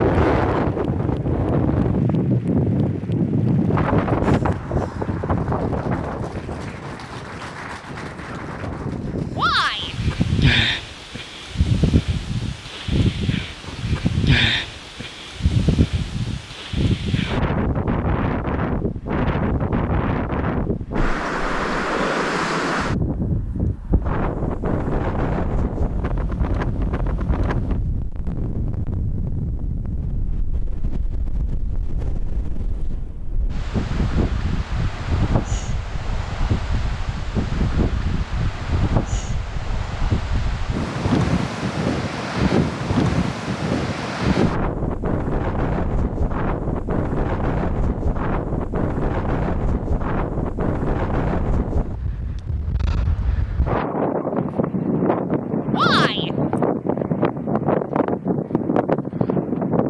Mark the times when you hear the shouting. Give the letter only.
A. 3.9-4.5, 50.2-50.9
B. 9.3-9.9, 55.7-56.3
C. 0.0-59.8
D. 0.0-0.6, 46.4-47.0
B.